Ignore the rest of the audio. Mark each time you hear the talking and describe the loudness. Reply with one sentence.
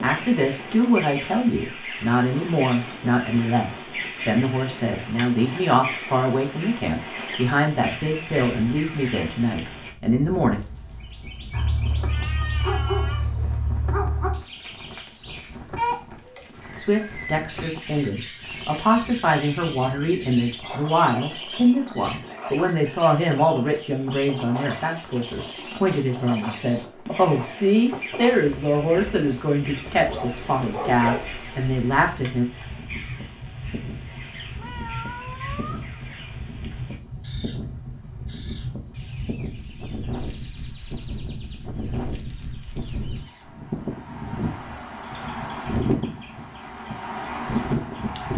You can hear the talking from 0.0 to 10.6 s, at a steady volume; and from 16.8 to 32.5 s, at a steady volume.